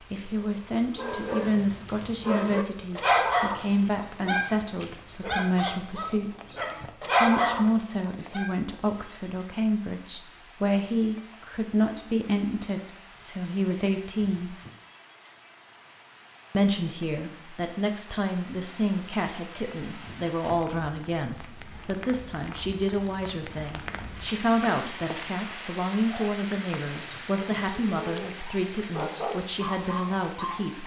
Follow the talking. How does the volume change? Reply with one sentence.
The volume of the talking stays about the same.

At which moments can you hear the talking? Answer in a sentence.
The talking can be heard from 0.0 to 6.5 s, from 7.2 to 14.6 s and from 16.5 to 30.8 s.